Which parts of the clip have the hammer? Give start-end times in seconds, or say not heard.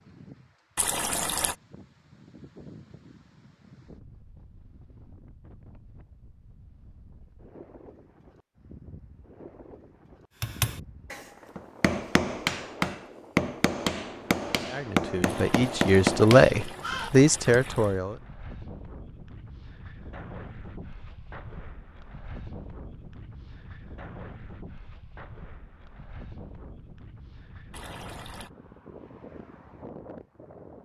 10.4-17.6.